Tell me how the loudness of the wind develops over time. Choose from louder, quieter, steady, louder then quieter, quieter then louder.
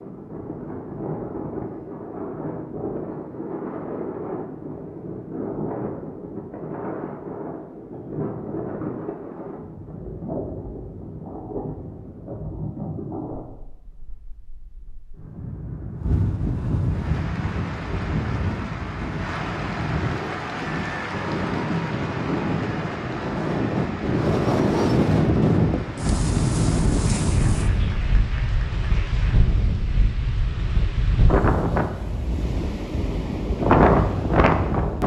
louder.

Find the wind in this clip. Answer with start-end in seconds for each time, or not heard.
0.0-35.0.